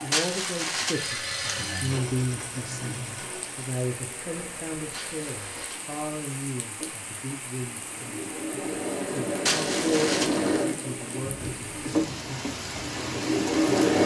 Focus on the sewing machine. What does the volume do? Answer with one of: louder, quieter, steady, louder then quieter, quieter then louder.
quieter then louder.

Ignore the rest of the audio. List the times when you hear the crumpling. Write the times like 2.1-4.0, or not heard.
0.1-1.8, 4.9-5.9, 9.4-10.6.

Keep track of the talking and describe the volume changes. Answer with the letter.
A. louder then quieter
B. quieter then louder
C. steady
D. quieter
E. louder
D.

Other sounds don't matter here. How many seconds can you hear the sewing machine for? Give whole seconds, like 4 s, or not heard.
14 s.